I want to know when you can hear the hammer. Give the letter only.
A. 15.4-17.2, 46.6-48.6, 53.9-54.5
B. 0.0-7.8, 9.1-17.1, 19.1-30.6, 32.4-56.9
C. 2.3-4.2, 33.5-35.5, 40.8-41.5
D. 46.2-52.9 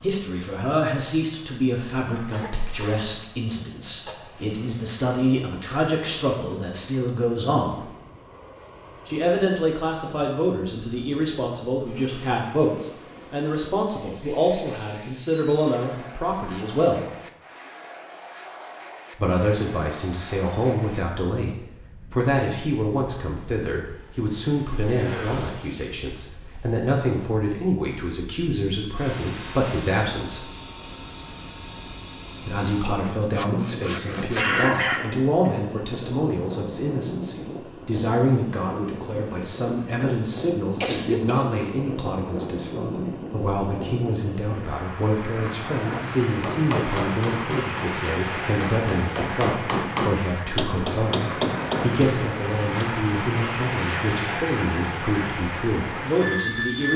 D.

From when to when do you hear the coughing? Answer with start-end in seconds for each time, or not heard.
2.3-4.2, 33.5-35.5, 40.8-41.5.